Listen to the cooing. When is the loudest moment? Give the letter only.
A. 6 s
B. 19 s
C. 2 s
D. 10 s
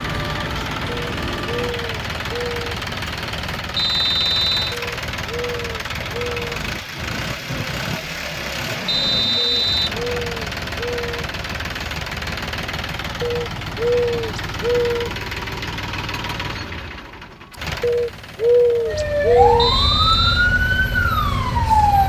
B.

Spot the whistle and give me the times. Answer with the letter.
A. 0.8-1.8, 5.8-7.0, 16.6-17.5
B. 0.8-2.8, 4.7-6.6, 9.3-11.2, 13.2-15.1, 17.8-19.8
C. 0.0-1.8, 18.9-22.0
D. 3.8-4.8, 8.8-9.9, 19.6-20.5
D.